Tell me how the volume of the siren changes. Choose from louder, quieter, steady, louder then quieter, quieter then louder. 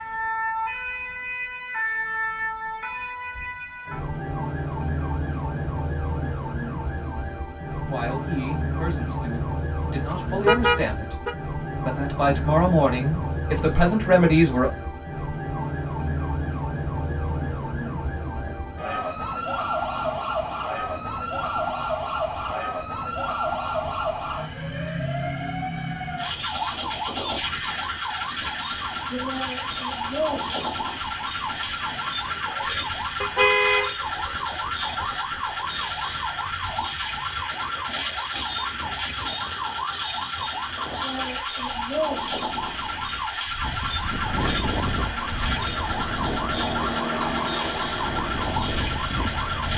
steady.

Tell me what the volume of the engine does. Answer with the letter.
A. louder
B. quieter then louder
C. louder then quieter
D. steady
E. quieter
C.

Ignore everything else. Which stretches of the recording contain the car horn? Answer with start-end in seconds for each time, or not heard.
10.4-11.3, 33.2-34.4.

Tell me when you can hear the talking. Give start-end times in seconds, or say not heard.
7.8-11.2, 11.8-14.7.